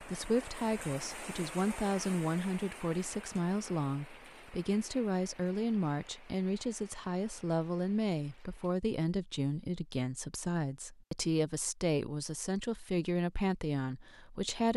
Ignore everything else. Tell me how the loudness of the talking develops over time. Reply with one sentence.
The loudness of the talking stays about the same.